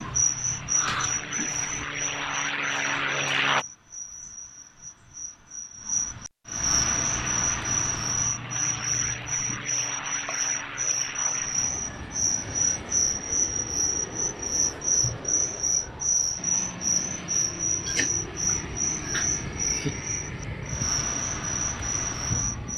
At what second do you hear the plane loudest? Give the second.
3 s.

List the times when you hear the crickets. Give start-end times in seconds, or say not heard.
0.0-22.7.